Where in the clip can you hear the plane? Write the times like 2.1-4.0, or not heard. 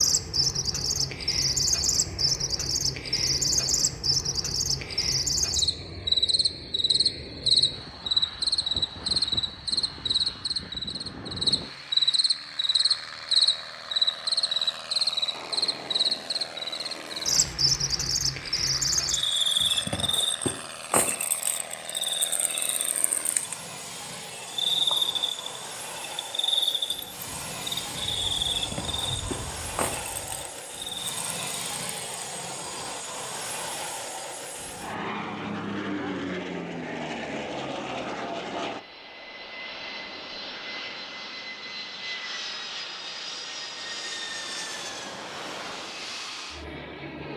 0.0-47.3.